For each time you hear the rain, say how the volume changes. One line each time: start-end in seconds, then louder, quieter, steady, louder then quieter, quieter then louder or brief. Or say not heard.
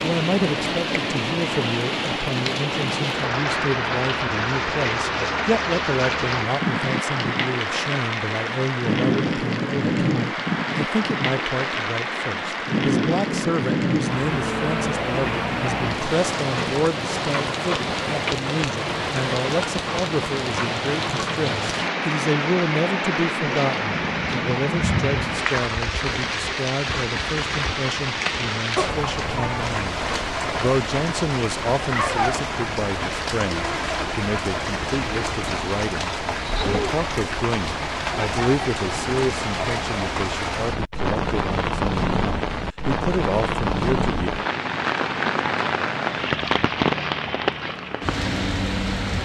0.0-49.1 steady.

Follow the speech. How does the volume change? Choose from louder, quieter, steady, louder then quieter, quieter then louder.
steady.